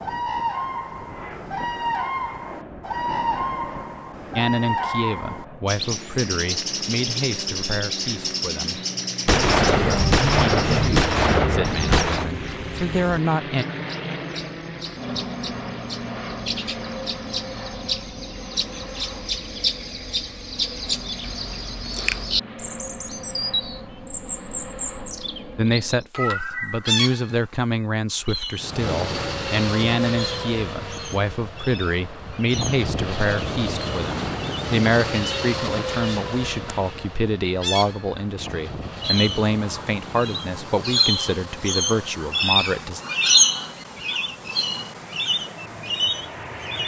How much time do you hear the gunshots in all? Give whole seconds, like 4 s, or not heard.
3 s.